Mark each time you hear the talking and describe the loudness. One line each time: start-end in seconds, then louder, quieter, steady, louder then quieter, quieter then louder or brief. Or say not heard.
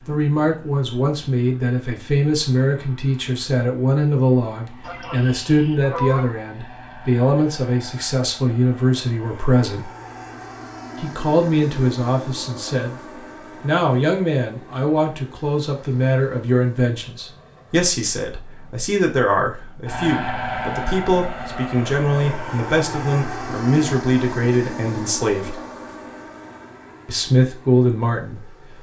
0.0-9.9 steady
11.0-12.9 brief
13.6-25.6 steady
27.1-28.4 brief.